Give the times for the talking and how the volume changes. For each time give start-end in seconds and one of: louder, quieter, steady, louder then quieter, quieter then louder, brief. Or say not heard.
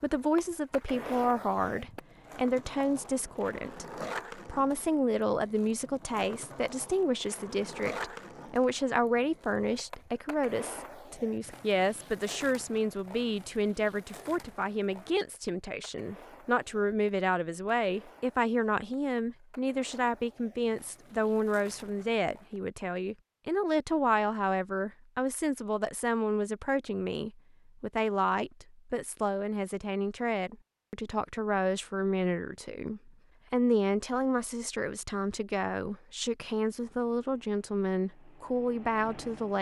0.0-39.5 steady.